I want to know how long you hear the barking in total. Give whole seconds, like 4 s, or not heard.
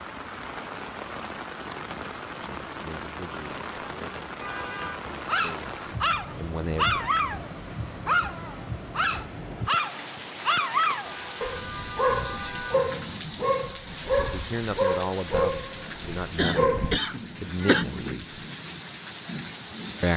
12 s.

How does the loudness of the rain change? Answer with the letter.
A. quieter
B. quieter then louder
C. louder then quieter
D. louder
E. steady
E.